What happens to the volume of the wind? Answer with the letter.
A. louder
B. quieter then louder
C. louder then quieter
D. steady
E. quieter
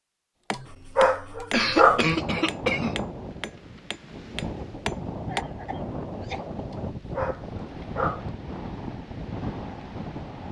D.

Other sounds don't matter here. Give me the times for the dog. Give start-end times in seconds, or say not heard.
0.5-2.1, 6.7-8.3.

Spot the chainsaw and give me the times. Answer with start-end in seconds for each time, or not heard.
not heard.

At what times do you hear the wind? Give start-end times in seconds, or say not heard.
1.6-10.4.